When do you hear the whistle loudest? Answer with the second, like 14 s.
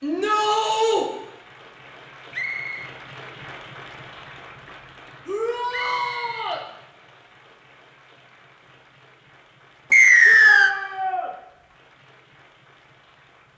10 s.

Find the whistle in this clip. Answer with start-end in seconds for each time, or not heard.
2.3-2.9, 5.7-6.5, 9.9-10.7.